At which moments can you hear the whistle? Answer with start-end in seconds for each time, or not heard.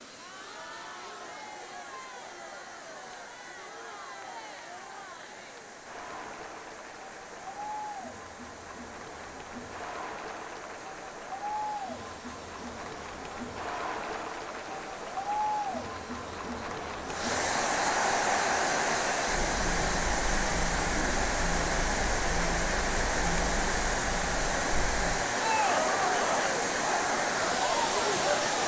not heard.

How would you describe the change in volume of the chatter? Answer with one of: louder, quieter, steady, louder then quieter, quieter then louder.
louder.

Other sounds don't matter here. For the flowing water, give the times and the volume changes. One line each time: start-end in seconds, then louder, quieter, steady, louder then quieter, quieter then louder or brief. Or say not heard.
0.0-28.6 louder.